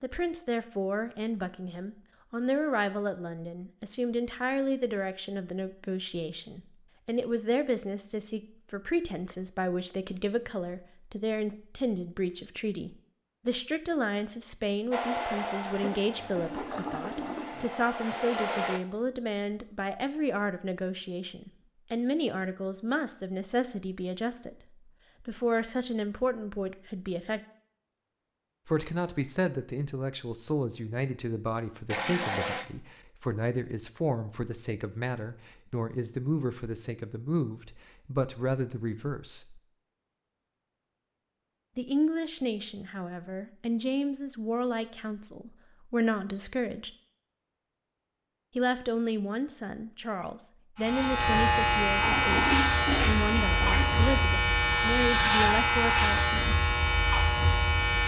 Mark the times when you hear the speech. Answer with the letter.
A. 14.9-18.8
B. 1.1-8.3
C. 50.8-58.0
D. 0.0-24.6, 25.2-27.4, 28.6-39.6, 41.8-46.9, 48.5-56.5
D.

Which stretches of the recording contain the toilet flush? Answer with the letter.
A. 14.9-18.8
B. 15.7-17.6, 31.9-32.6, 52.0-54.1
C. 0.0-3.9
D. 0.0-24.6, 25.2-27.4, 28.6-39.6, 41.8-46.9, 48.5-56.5
B.